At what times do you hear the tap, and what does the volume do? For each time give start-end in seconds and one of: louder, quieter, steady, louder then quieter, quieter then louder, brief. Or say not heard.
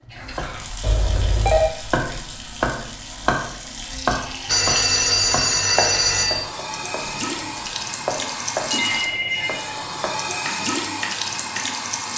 0.1-12.1 louder.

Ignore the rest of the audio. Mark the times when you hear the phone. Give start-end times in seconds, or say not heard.
0.8-1.8, 4.5-6.5, 8.7-9.6.